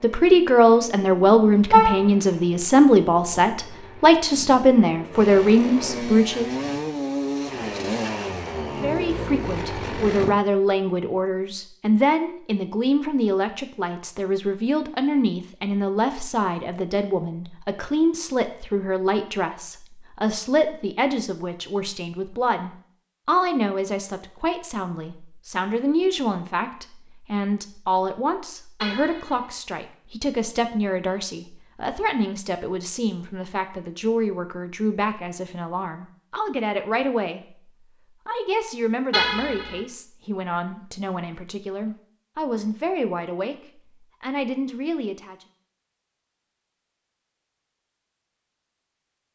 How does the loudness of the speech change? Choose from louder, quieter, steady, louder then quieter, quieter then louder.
quieter.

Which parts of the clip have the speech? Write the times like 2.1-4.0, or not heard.
0.0-6.5, 8.8-45.5.